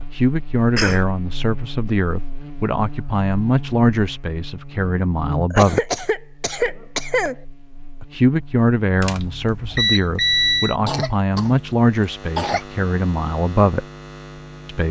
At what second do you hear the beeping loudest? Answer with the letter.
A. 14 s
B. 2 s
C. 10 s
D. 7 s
C.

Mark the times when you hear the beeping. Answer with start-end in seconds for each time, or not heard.
9.0-10.8.